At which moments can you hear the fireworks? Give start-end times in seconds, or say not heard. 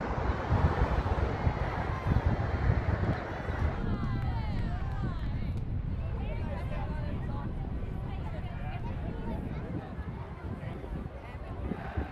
not heard.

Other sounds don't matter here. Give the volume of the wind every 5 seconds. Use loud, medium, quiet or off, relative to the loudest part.
loud, medium, medium.